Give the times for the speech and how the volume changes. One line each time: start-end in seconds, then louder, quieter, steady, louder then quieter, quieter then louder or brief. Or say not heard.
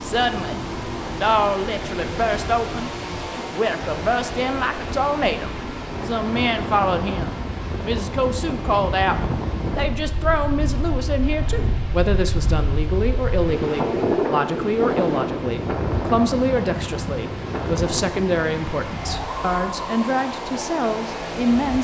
0.0-21.8 steady.